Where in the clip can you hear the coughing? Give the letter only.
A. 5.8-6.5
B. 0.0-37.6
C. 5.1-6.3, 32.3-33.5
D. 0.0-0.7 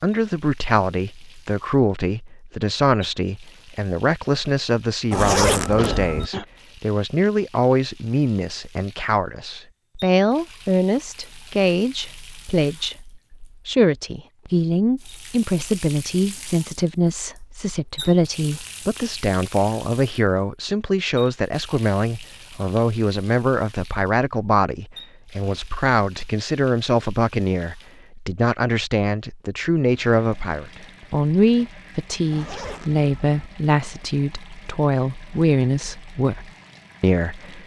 A.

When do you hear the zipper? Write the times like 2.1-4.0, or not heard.
5.1-6.3, 32.3-33.5.